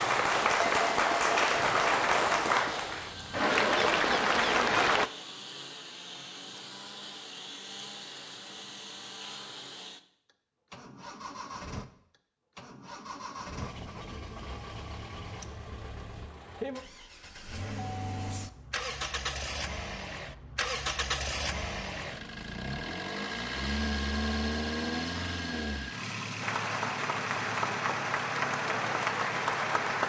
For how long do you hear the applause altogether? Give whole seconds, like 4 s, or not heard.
9 s.